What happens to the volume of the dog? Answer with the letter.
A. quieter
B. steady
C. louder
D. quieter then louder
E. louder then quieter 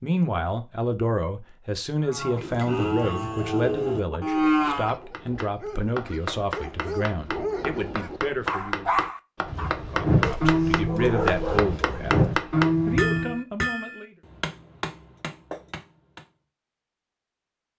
C.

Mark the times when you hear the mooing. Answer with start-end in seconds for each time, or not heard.
2.0-5.0, 9.4-13.4.